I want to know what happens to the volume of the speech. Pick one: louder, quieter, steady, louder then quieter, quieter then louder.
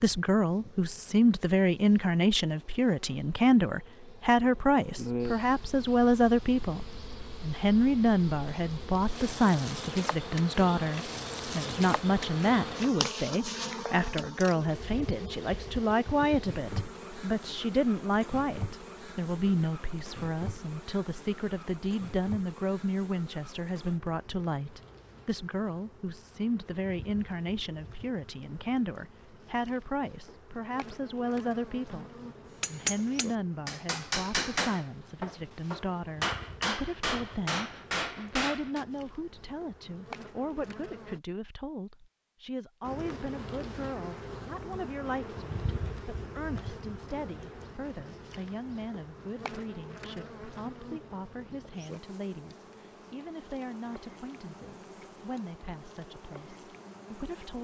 quieter.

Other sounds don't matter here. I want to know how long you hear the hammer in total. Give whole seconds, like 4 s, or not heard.
6 s.